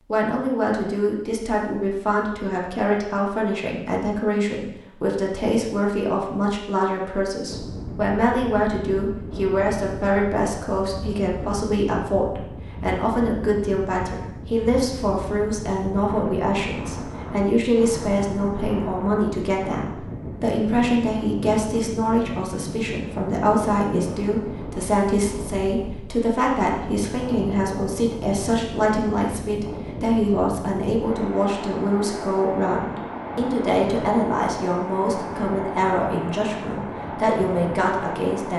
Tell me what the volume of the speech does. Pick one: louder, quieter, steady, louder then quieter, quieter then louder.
steady.